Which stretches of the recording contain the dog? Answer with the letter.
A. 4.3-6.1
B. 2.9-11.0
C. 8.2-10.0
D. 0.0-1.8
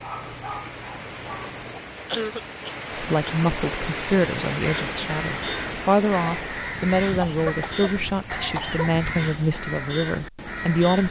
D.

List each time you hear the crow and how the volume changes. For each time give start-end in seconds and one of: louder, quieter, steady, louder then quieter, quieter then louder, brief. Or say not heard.
4.5-11.0 steady.